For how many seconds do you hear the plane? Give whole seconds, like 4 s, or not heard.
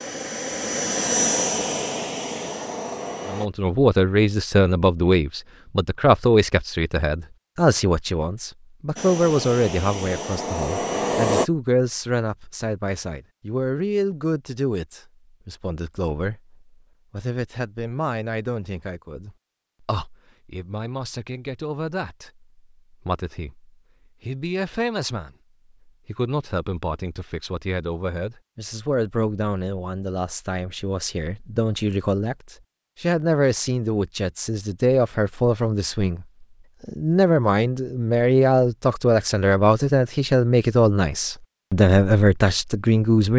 6 s.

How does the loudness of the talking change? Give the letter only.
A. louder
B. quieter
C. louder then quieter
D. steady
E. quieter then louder
E.